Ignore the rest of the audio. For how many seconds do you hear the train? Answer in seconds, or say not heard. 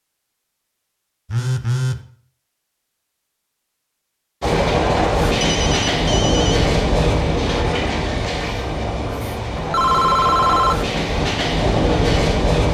8 s.